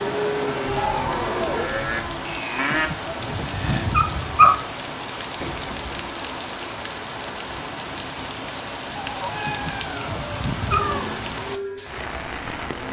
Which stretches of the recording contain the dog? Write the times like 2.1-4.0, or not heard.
2.7-4.7, 9.4-11.0.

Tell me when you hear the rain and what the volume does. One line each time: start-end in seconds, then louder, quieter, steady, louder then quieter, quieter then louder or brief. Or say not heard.
0.0-12.8 steady.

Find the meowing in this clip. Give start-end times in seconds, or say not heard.
0.7-2.2, 5.4-6.0, 8.9-11.2.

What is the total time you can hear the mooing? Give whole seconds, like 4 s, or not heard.
6 s.